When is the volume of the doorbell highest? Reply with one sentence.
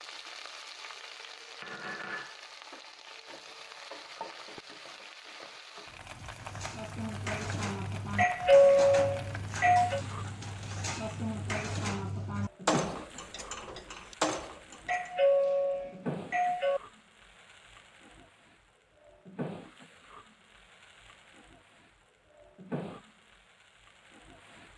The volume of the doorbell peaks at 9 seconds.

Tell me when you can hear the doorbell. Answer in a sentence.
The doorbell can be heard from 8.2 to 10.0 s and from 14.8 to 16.8 s.